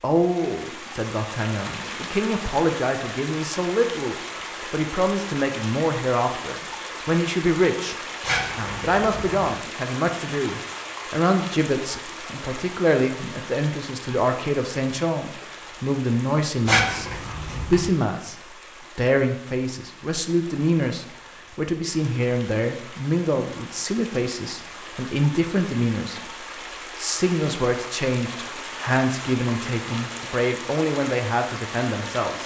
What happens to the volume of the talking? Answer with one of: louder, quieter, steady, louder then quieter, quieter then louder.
steady.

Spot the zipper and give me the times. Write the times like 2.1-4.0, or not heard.
8.2-9.5, 16.6-17.9.